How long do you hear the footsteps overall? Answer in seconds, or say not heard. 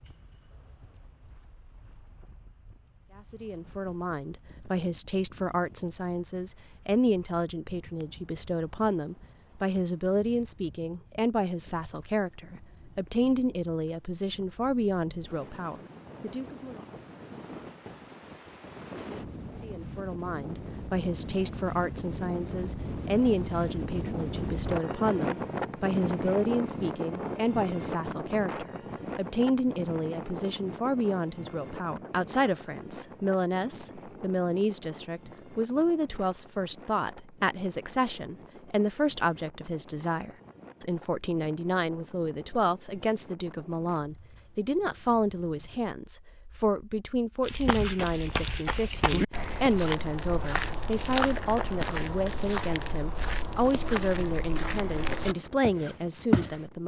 9 s.